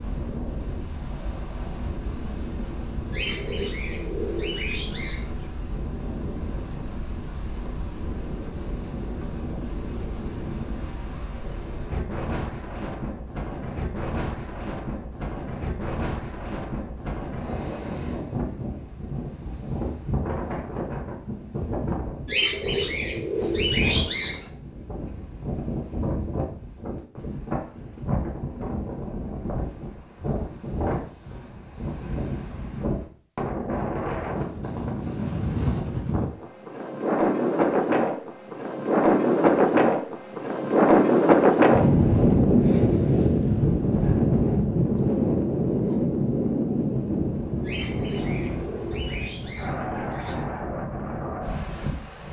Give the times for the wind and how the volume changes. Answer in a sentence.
You can hear the wind from 0.0 to 52.2 s, getting louder.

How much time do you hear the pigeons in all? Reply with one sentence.
The pigeons can be heard for 7 seconds in total.